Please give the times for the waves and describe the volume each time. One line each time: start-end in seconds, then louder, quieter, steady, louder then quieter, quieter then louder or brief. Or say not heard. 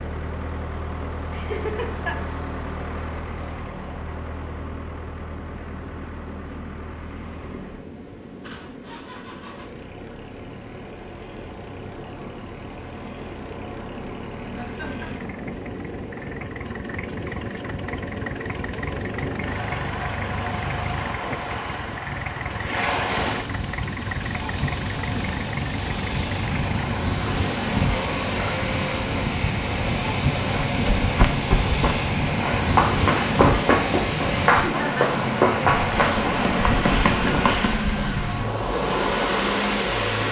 0.0-40.2 louder.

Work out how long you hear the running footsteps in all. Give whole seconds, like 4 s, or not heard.
7 s.